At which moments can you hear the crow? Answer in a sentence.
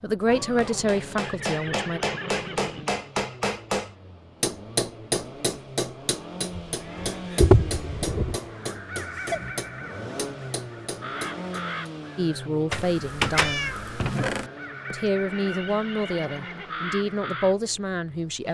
You can hear the crow from 8.6 to 17.6 s.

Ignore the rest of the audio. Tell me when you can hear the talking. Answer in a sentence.
The talking can be heard from 0.0 to 2.0 s, from 12.2 to 13.8 s and from 14.9 to 18.4 s.